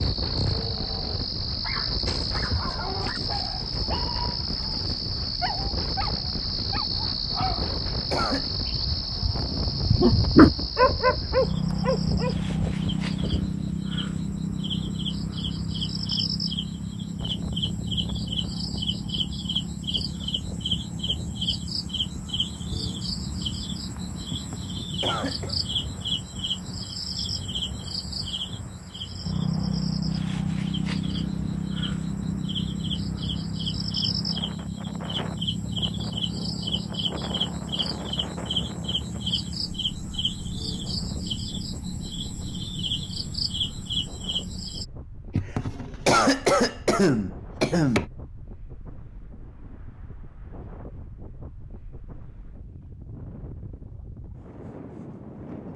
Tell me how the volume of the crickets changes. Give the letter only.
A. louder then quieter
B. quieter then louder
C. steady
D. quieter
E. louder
C.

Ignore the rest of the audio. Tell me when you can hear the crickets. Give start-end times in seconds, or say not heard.
0.0-44.9.